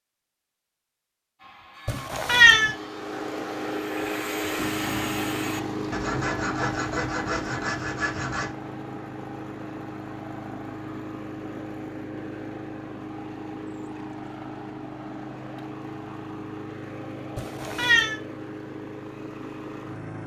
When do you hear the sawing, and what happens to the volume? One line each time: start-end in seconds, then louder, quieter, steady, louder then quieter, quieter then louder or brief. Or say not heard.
1.4-8.5 louder.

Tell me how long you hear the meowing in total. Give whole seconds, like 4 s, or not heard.
2 s.